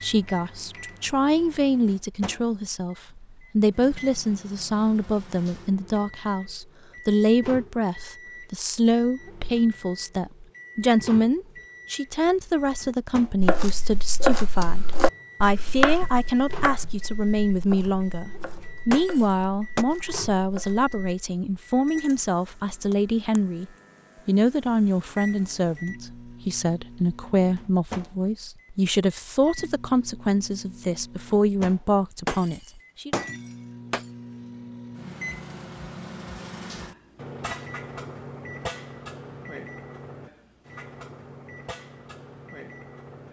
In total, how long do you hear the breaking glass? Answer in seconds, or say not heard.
3 s.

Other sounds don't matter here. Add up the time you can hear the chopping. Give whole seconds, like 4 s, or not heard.
8 s.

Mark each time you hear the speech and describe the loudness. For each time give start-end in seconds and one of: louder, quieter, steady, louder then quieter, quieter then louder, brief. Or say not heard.
0.0-33.1 steady.